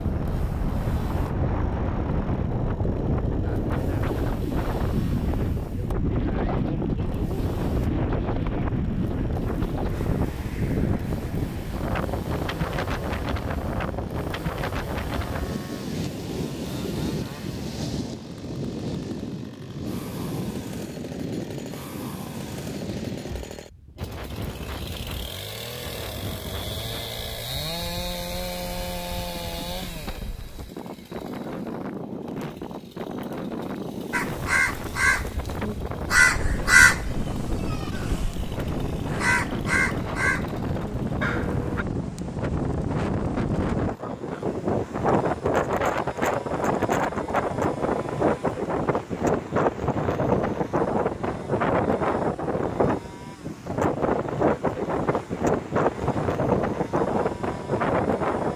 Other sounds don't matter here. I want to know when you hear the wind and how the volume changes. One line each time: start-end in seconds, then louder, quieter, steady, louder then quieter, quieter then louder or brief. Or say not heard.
0.0-58.5 quieter then louder.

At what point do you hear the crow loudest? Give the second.
37 s.